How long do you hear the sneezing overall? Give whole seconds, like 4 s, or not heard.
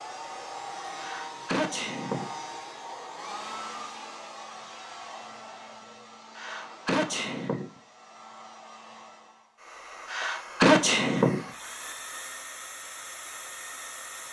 4 s.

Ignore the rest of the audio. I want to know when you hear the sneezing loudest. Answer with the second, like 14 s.
11 s.